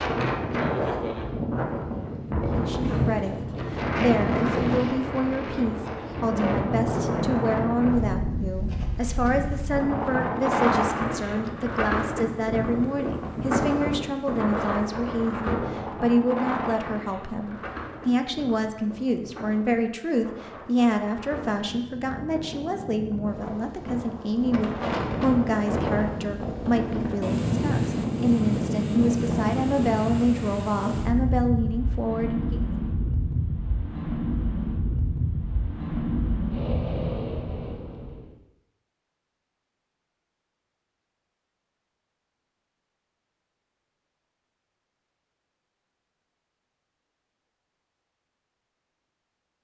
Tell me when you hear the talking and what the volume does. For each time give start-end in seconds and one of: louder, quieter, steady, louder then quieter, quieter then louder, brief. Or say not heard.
2.5-32.7 steady.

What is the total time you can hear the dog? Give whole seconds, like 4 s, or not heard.
not heard.